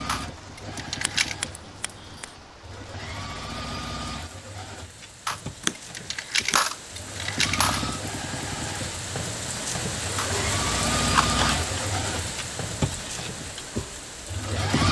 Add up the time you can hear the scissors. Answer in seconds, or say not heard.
3 s.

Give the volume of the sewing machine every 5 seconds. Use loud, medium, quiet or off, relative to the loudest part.
medium, medium, loud.